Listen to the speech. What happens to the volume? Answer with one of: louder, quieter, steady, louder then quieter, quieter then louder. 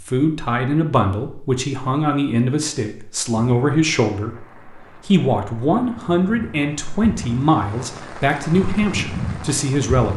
steady.